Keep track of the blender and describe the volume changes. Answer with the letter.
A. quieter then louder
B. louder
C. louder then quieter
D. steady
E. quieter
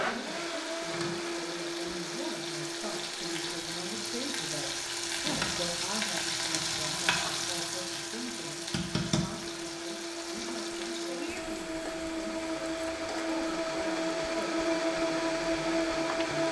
A.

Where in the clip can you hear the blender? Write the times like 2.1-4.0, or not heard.
0.0-16.4.